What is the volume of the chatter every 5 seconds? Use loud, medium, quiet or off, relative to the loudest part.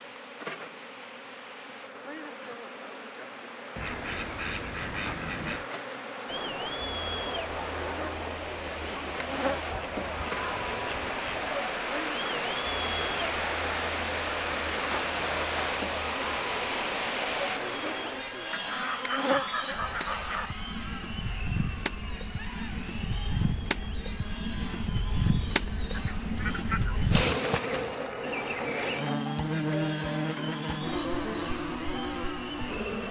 off, loud, loud, loud, medium, medium, medium.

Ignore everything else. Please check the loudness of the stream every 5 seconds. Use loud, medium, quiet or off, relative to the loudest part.
quiet, medium, loud, loud, off, off, off.